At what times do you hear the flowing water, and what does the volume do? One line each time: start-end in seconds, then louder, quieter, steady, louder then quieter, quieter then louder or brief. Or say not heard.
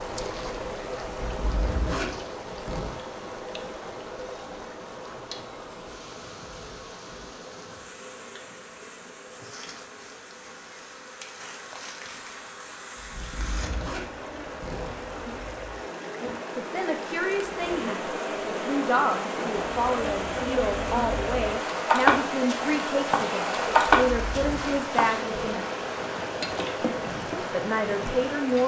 0.0-28.6 quieter then louder.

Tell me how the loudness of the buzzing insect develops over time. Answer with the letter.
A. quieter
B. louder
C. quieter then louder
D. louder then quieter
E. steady
B.